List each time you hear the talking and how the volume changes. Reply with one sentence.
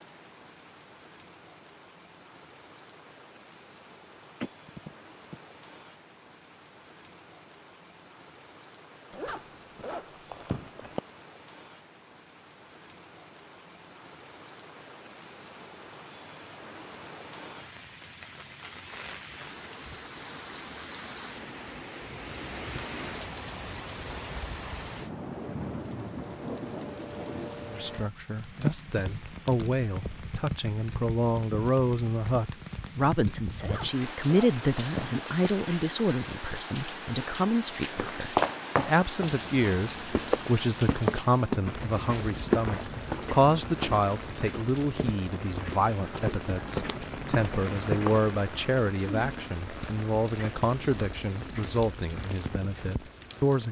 The talking can be heard from 27.6 to 53.6 s, at a steady volume.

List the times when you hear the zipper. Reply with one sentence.
The zipper can be heard from 9.1 to 11.0 s and from 33.5 to 35.5 s.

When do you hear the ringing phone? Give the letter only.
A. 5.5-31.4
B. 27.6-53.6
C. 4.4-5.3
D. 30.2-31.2
C.